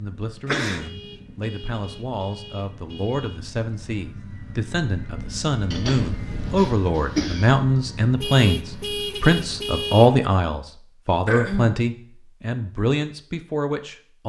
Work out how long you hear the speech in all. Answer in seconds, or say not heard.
14 s.